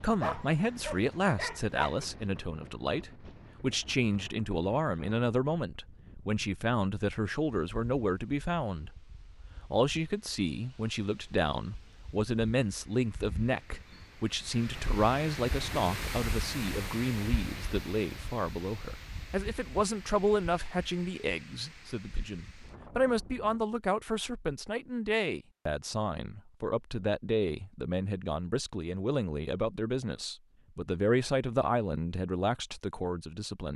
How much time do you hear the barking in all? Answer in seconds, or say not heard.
2 s.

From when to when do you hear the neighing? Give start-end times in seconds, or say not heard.
not heard.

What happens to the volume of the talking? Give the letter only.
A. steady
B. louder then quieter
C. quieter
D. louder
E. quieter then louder
A.